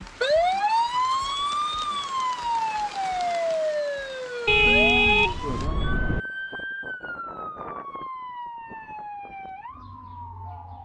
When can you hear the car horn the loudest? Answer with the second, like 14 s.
5 s.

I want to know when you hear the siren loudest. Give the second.
1 s.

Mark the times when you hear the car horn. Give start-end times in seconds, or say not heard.
4.5-6.2.